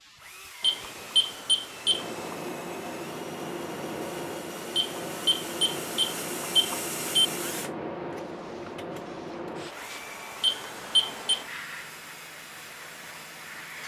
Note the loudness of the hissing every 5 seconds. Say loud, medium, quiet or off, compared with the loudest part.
loud, loud, medium.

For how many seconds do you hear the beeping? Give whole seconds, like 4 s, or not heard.
5 s.